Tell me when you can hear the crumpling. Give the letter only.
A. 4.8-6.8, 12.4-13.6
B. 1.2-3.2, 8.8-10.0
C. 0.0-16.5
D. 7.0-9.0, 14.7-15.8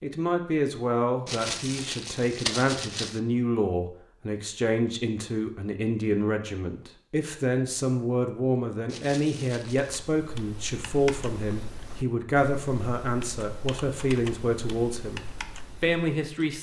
B.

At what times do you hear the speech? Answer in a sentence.
You can hear the speech from 0.0 to 16.5 s.